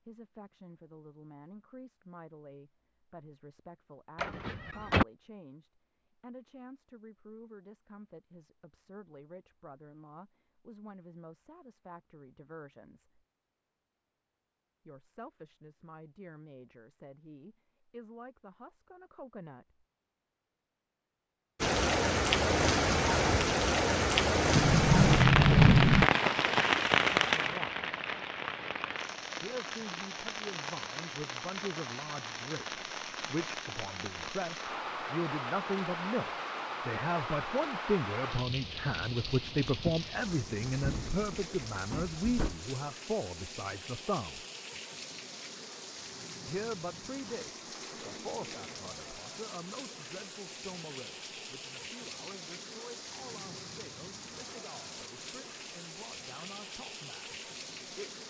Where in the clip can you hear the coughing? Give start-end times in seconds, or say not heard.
not heard.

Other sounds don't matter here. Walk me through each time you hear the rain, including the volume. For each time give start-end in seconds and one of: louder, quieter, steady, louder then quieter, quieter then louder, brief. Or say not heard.
21.6-58.2 quieter.